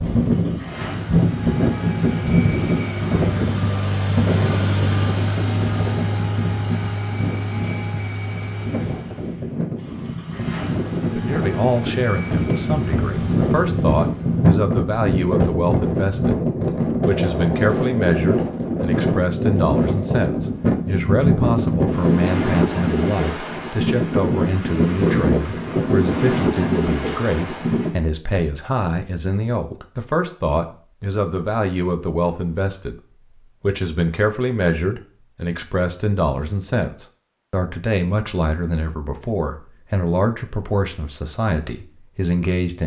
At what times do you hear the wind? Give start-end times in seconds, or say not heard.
0.0-27.9.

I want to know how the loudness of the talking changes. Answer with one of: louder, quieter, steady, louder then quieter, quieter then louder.
steady.